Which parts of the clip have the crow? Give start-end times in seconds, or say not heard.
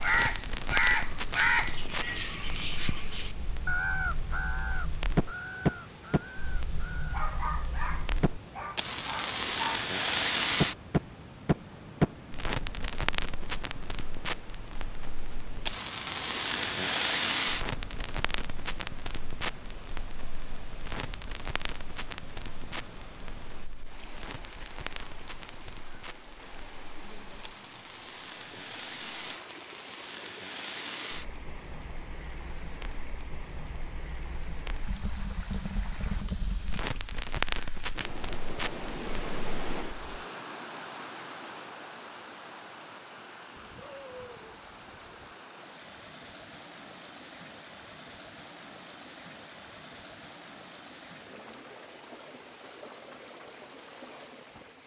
0.0-7.0.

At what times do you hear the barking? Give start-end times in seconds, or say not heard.
7.1-9.8, 43.5-45.2.